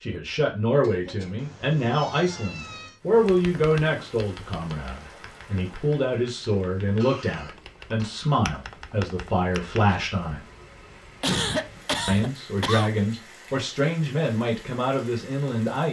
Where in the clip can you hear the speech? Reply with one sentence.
You can hear the speech from 0.0 to 10.4 s and from 12.1 to 15.8 s.